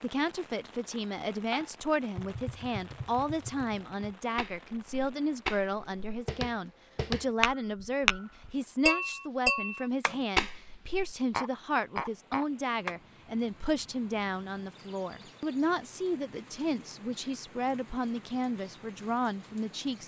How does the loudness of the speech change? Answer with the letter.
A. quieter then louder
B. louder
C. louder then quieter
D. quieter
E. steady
E.